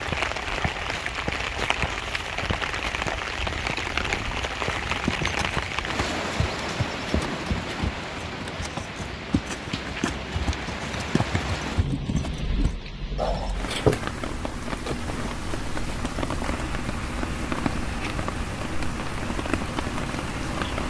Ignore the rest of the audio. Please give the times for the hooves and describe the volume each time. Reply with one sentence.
You can hear the hooves from 4.7 to 13.6 s, at a steady volume.